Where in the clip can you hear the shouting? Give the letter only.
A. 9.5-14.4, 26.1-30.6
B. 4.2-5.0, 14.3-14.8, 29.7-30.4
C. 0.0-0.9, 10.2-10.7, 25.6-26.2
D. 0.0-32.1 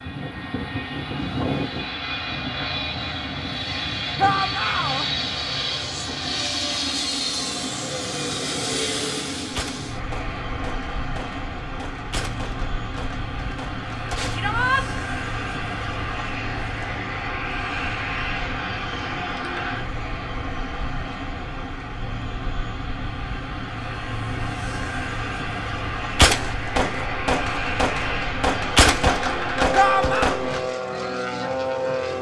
B.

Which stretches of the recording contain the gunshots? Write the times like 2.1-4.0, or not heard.
9.5-14.4, 26.1-30.6.